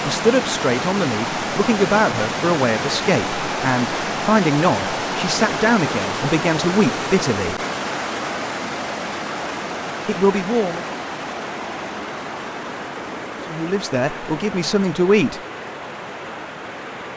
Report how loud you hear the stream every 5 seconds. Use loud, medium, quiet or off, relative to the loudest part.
loud, loud, medium, medium.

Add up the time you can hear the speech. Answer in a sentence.
The speech can be heard for 10 seconds in total.